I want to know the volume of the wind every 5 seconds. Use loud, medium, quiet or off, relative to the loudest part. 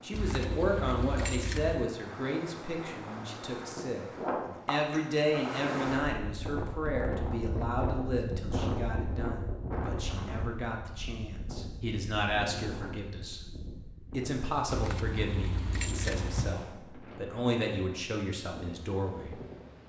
loud, loud, medium, medium.